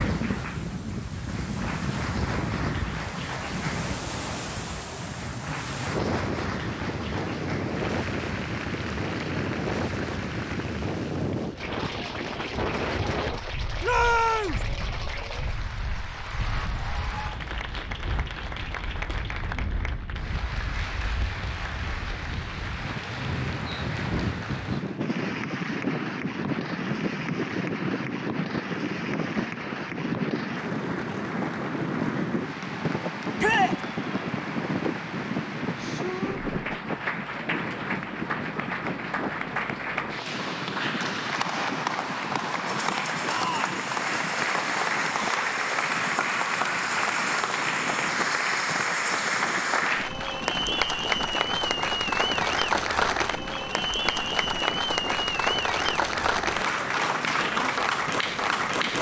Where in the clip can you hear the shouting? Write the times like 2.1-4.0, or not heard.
13.8-14.7, 33.4-33.8, 43.2-43.8.